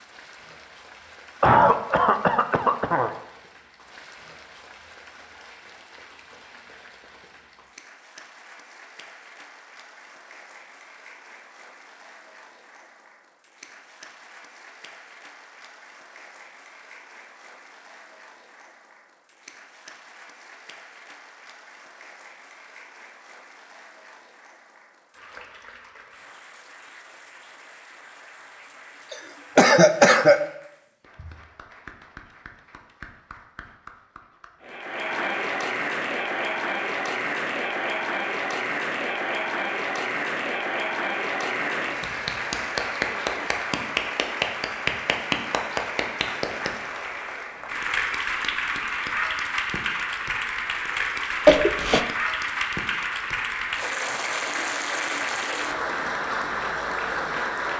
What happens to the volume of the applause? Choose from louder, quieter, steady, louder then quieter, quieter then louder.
louder.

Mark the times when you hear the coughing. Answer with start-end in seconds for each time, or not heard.
1.4-3.1, 29.1-30.4, 51.5-52.0.